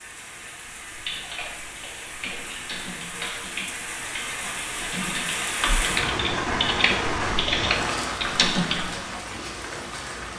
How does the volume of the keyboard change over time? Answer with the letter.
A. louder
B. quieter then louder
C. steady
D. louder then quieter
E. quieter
A.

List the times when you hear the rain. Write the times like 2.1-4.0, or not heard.
0.0-10.3.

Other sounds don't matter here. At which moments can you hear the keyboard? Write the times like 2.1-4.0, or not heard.
0.9-8.9.